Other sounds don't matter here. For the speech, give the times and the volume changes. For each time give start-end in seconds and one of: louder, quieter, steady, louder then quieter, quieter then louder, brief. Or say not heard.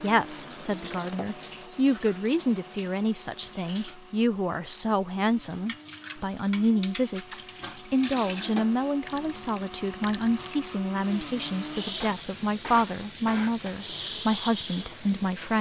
0.0-15.5 steady.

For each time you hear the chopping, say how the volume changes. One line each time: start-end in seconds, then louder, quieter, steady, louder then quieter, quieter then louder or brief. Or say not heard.
not heard.